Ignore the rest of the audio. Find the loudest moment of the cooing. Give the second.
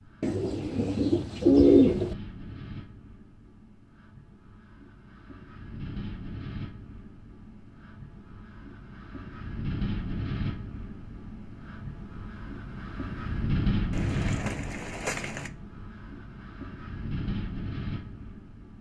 2 s.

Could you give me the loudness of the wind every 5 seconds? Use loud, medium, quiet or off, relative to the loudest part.
quiet, medium, loud, medium.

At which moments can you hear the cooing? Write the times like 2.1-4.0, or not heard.
0.2-2.1, 13.9-15.5.